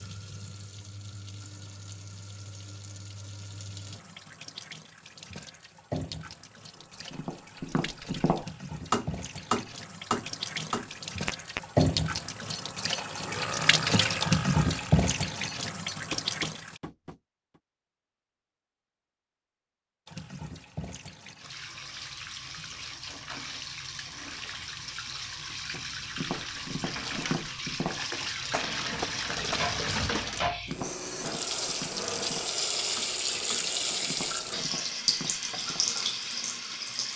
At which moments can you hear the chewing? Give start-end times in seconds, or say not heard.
not heard.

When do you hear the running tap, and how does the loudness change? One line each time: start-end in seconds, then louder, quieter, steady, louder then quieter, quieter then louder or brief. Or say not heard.
0.0-16.8 louder
20.1-37.1 louder.